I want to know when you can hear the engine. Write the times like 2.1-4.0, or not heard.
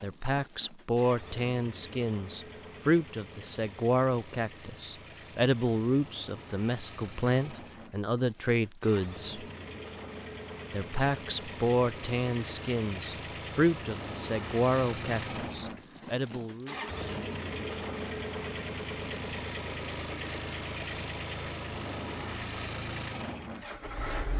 0.0-24.3.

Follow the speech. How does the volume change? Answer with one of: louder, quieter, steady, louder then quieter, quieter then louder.
steady.